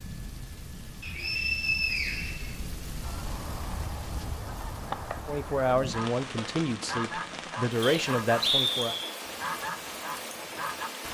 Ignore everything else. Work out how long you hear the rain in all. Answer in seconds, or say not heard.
11 s.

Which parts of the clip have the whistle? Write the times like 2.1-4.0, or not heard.
1.0-2.5, 7.8-9.1.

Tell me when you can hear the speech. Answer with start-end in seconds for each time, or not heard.
5.2-8.9.